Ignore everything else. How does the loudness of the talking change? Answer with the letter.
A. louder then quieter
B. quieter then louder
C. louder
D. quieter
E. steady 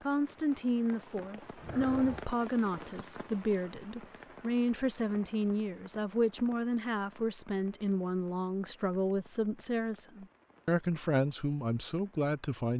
E.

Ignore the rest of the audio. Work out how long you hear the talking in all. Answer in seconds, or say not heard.
13 s.